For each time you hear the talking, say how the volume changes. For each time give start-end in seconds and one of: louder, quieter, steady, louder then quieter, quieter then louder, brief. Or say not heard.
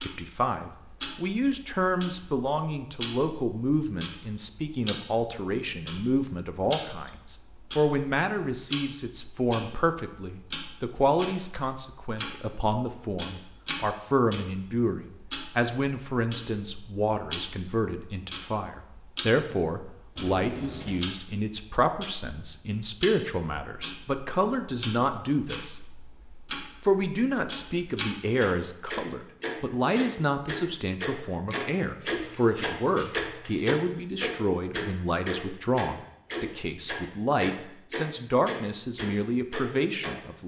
0.0-25.9 steady
26.8-40.4 steady.